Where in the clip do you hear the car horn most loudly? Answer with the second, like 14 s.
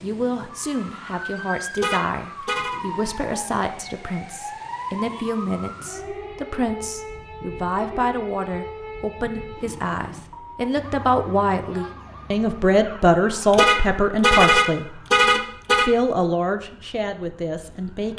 14 s.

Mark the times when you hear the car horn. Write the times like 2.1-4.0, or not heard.
1.8-2.8, 13.5-15.9.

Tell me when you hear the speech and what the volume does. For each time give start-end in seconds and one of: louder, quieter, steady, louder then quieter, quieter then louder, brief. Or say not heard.
0.0-15.0 louder
15.8-18.1 brief.